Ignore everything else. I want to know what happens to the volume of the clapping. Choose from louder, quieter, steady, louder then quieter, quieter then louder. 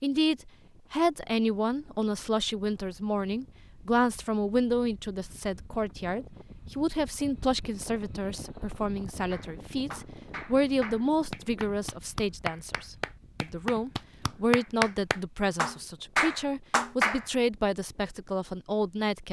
louder.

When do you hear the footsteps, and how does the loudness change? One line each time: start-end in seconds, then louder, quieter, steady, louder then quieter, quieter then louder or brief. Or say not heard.
not heard.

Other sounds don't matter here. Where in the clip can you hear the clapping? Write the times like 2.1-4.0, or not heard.
9.3-17.2.